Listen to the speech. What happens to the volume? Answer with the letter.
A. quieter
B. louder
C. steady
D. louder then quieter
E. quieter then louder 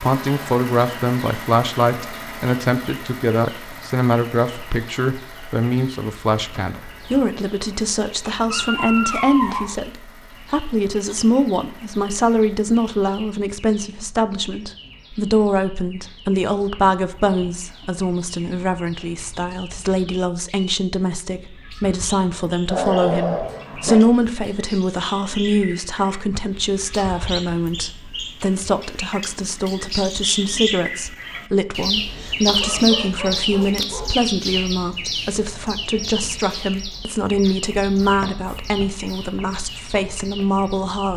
C.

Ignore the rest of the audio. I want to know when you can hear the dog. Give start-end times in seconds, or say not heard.
8.2-9.8, 22.6-23.9, 32.5-34.2.